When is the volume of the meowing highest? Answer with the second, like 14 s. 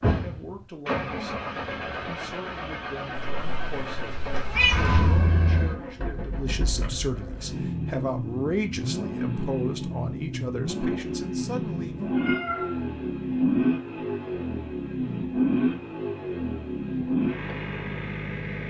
5 s.